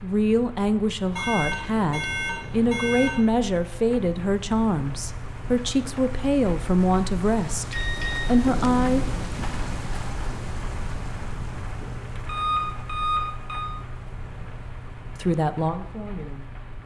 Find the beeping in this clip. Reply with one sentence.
The beeping can be heard from 1.1 to 3.2 s, from 7.7 to 8.3 s and from 12.2 to 13.7 s.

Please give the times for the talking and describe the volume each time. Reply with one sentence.
You can hear the talking from 0.0 to 9.0 s, at a steady volume; and briefly from 15.2 to 16.6 s.